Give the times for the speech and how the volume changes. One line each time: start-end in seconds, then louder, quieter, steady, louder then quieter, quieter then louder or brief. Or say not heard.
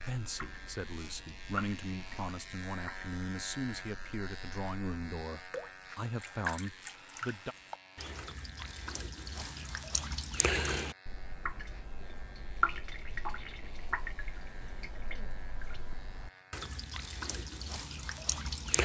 0.0-7.5 steady.